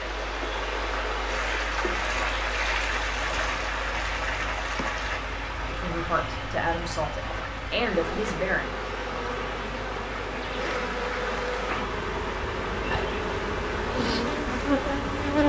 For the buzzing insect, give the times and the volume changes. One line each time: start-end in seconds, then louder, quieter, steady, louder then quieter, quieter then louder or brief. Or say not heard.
0.0-15.4 louder.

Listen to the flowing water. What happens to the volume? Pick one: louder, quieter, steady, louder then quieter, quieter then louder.
quieter.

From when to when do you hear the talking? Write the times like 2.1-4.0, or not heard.
5.7-8.7.